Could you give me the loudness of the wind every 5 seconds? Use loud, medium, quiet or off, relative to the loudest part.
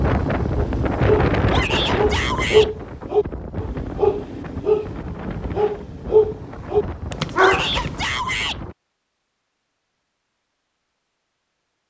loud, medium, off.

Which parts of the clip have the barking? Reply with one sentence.
The barking can be heard from 0.6 to 8.1 s.